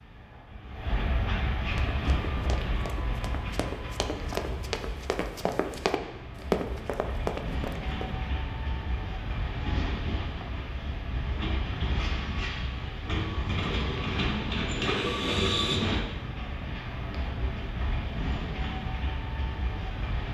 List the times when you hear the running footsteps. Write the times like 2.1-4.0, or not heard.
1.8-8.2.